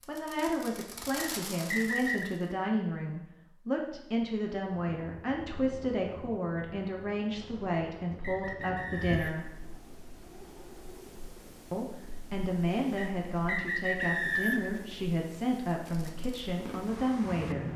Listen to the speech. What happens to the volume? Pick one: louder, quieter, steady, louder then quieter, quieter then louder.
steady.